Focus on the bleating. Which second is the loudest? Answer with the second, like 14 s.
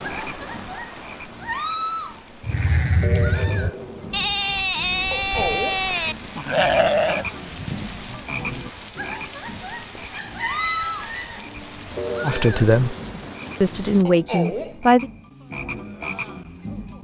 7 s.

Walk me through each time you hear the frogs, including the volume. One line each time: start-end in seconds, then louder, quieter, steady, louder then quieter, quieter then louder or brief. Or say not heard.
0.0-17.0 steady.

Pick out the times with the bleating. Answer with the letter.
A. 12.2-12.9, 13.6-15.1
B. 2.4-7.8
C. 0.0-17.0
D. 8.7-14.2
B.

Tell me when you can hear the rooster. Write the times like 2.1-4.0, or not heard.
10.1-11.5.